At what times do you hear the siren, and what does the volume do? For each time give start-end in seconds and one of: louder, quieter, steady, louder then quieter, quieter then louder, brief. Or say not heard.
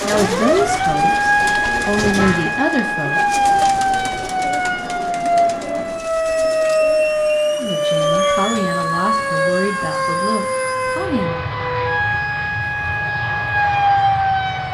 0.0-14.7 steady.